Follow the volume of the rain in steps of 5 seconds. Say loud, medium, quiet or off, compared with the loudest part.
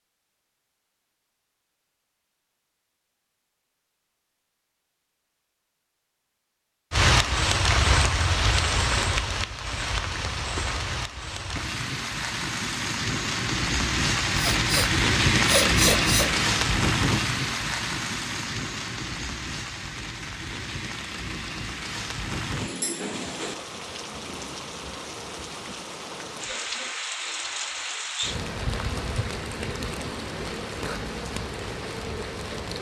off, loud, loud, loud, medium, medium, medium.